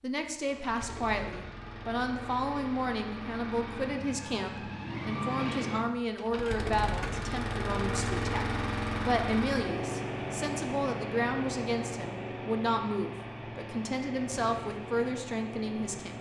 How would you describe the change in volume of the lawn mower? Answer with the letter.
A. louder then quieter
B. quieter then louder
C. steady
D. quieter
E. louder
A.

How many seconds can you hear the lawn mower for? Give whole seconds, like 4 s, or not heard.
16 s.